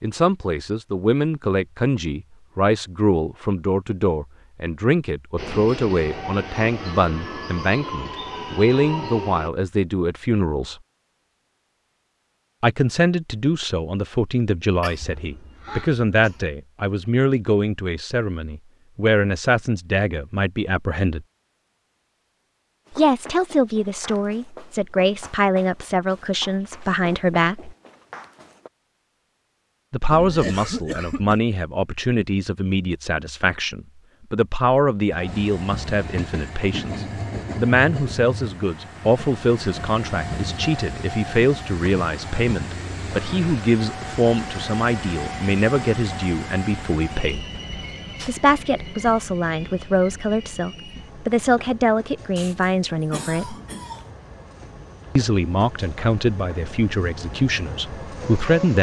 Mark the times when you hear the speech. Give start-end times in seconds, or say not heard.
0.0-10.8, 12.6-21.2, 22.9-27.8, 29.9-47.4, 48.2-53.5, 55.1-58.7.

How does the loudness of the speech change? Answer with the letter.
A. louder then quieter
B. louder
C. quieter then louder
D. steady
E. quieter
D.